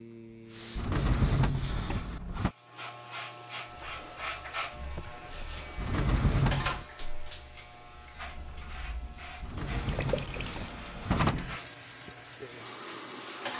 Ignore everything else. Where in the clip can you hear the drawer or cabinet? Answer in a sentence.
The drawer or cabinet can be heard from 0.8 to 2.5 s, from 5.8 to 6.8 s and from 9.4 to 11.6 s.